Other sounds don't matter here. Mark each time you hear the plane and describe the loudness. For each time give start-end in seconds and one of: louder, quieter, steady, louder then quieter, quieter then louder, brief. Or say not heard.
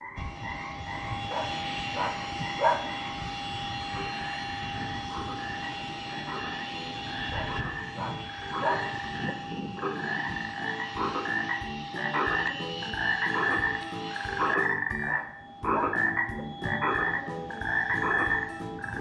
0.1-18.9 quieter.